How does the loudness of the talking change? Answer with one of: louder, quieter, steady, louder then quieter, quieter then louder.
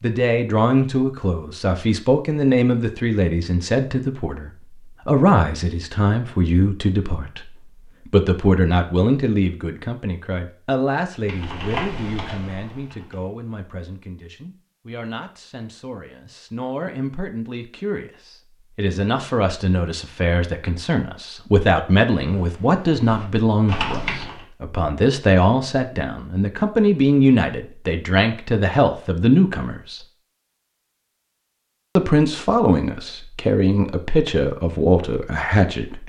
quieter then louder.